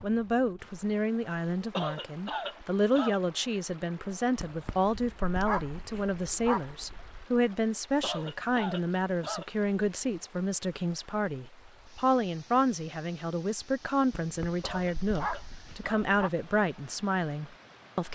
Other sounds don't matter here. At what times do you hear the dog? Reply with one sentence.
You can hear the dog from 4.3 to 7.2 s and from 14.2 to 16.3 s.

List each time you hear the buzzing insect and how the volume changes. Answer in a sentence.
The buzzing insect can't be heard in this clip.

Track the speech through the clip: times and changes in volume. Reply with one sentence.
The speech can be heard from 0.0 to 18.0 s, at a steady volume.